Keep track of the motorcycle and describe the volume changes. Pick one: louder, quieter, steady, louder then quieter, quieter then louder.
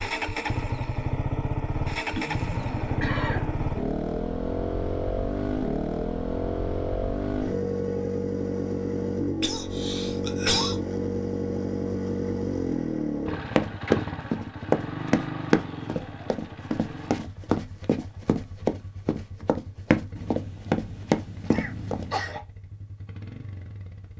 quieter.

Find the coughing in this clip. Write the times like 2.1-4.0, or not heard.
2.0-3.5, 9.4-10.8, 21.5-22.4.